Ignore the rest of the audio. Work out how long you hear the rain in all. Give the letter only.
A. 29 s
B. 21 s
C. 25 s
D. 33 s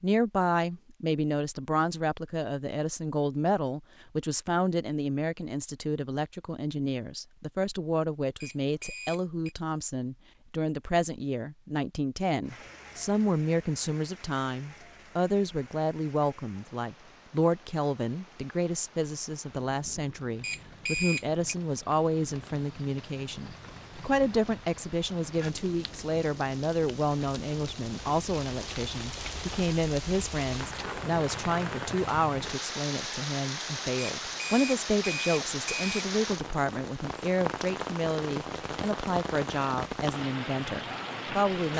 A.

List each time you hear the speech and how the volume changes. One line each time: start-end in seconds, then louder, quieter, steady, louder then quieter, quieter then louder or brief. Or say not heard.
0.0-41.7 steady.